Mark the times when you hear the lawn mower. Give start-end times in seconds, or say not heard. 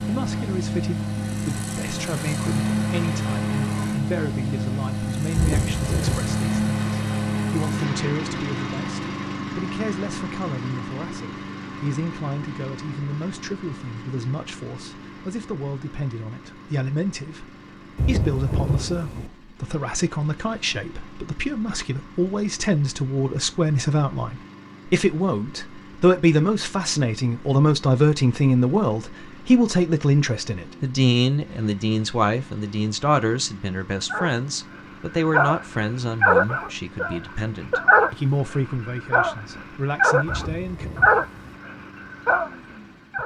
0.0-43.2.